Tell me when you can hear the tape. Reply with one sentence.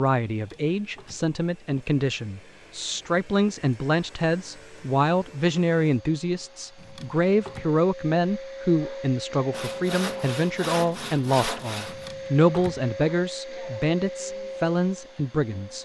You can't hear the tape here.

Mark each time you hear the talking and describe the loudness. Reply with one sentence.
The talking can be heard from 0.0 to 15.8 s, at a steady volume.